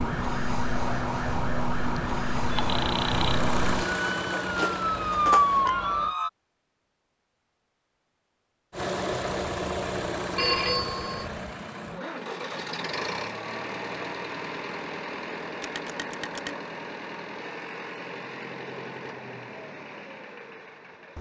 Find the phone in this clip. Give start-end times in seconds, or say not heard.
2.5-3.4, 10.3-11.3, 15.6-16.6.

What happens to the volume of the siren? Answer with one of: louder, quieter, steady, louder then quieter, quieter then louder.
louder.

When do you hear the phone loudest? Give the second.
11 s.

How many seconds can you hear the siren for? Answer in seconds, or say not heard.
6 s.